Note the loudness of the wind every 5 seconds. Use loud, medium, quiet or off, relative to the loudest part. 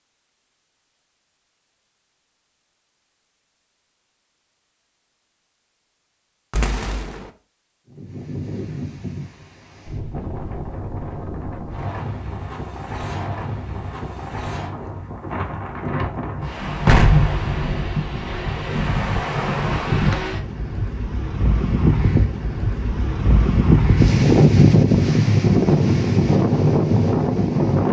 off, quiet, quiet, medium, loud, loud.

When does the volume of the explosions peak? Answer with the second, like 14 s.
17 s.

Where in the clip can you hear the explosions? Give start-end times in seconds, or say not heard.
6.5-7.2, 16.9-18.1.